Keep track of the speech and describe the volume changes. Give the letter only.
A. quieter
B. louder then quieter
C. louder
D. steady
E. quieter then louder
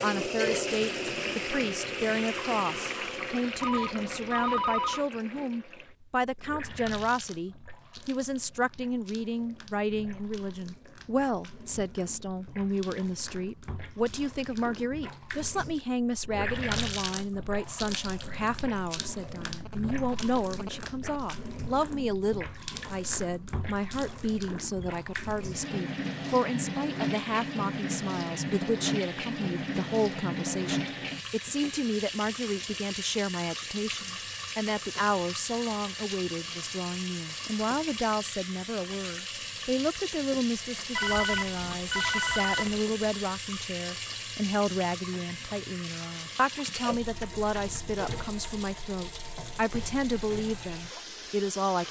D.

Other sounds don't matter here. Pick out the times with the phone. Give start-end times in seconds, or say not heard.
3.6-5.0, 19.6-21.2, 41.0-42.9.